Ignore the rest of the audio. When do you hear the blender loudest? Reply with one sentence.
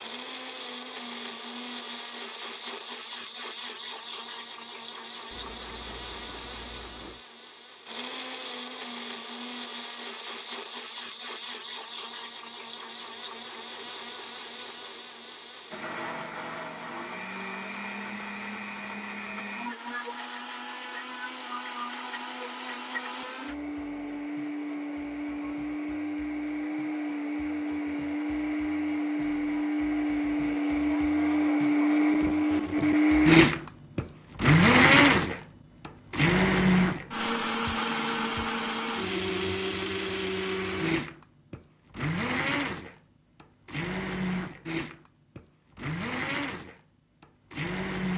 The loudest moment of the blender is at 35 seconds.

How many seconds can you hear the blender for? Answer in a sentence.
You can hear the blender for 48 seconds altogether.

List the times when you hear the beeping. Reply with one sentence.
The beeping can be heard from 5.3 to 7.2 s.